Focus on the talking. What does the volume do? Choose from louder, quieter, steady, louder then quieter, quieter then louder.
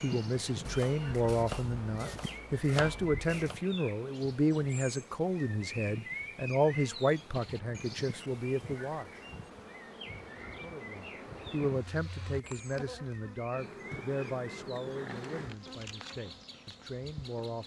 quieter.